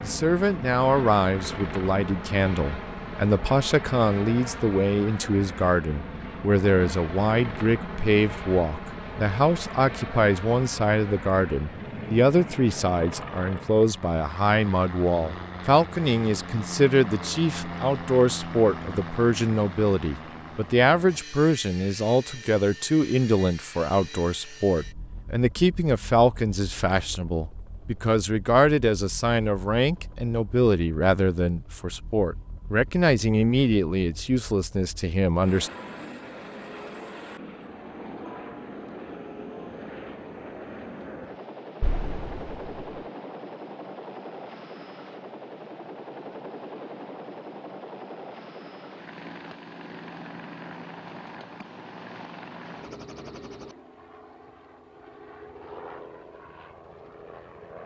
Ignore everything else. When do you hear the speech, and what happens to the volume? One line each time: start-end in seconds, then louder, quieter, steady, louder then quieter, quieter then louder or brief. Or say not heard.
0.0-35.7 steady.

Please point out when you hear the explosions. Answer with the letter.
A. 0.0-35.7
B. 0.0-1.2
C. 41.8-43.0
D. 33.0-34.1
C.